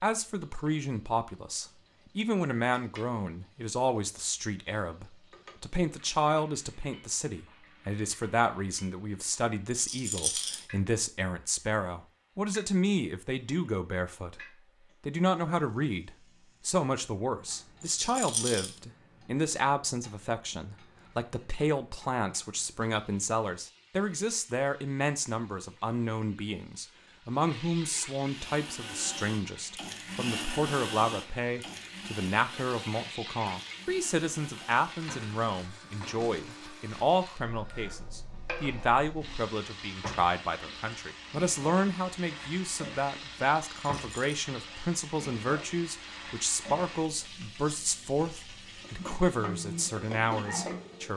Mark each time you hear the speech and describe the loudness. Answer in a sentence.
The speech can be heard from 0.0 to 51.1 s, at a steady volume.